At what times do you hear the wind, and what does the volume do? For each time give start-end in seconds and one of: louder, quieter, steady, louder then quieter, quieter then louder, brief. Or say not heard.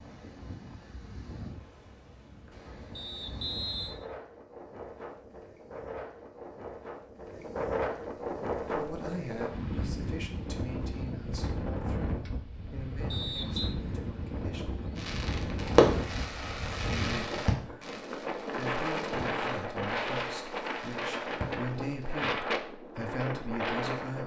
0.0-24.2 louder.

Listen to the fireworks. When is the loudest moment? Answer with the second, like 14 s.
16 s.